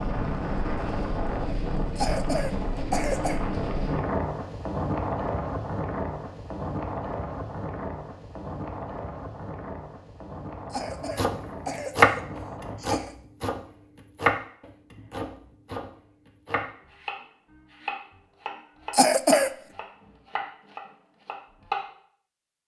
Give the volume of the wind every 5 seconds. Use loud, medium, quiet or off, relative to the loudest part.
loud, loud, medium, off, off.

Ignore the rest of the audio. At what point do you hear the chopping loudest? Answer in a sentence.
The volume of the chopping peaks at 12 seconds.